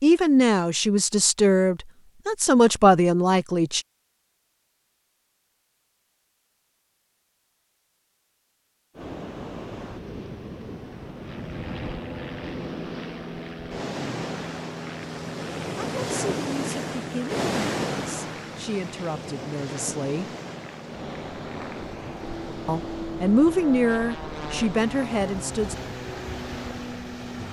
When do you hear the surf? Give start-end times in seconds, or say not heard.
8.9-27.4.